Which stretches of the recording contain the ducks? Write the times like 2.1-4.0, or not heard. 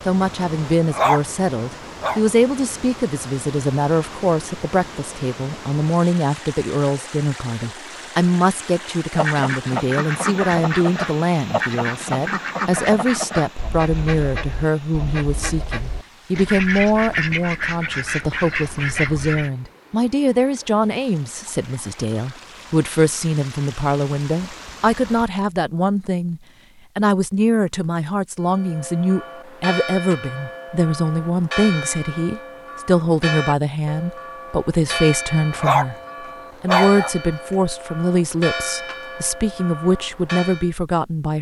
9.1-19.5.